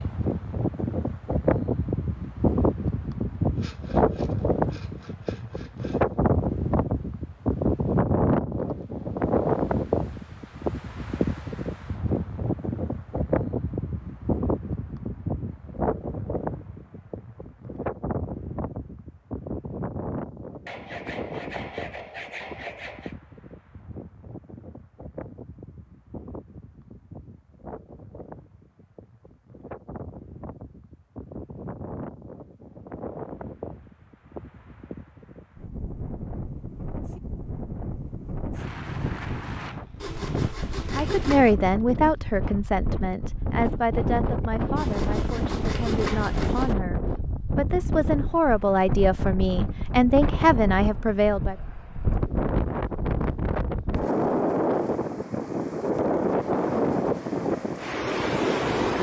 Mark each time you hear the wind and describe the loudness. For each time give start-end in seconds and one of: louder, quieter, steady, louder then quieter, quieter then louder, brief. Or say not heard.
0.0-58.9 quieter then louder.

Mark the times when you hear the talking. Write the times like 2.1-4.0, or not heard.
41.0-51.5.